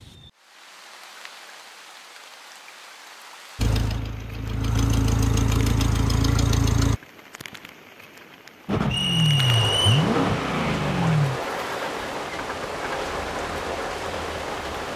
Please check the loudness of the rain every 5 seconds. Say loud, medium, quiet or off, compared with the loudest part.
quiet, medium, loud.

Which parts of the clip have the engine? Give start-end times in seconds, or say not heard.
3.5-7.0, 8.7-14.9.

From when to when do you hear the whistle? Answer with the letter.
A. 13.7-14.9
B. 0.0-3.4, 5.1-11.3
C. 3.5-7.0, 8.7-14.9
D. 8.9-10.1
D.